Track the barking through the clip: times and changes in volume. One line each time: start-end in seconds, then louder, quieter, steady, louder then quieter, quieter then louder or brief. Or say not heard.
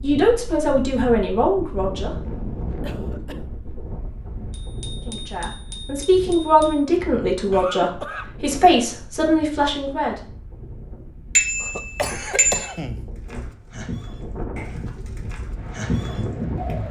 not heard.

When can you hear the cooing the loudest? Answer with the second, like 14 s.
16 s.